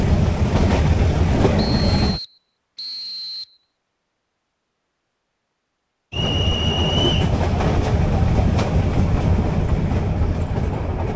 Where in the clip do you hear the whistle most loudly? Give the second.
7 s.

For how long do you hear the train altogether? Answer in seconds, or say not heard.
7 s.